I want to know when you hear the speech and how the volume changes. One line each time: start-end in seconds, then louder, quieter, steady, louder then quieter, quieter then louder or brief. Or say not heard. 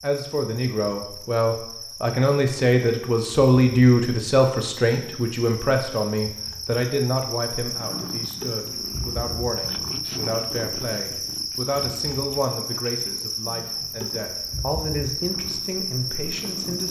0.0-16.8 quieter.